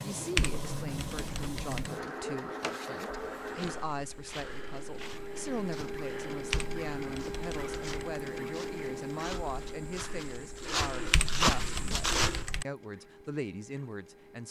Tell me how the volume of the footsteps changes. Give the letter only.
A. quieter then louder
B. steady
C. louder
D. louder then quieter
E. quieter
C.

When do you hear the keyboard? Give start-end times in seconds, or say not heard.
0.3-1.9, 6.5-8.1, 11.1-12.7.